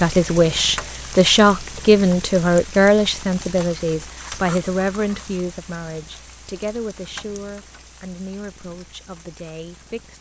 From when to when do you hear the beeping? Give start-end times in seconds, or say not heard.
not heard.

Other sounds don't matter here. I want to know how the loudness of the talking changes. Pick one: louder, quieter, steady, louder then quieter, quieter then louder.
quieter.